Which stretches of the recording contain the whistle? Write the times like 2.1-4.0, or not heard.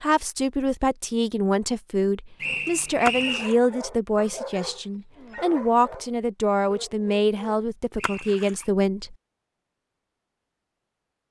2.4-3.5, 8.0-8.6.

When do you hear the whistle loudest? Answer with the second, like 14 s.
3 s.